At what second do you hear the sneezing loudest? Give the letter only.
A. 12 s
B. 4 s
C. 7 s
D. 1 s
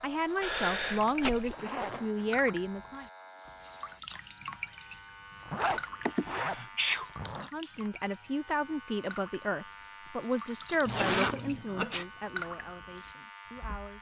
C.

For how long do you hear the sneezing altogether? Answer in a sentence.
The sneezing can be heard for 3 seconds in total.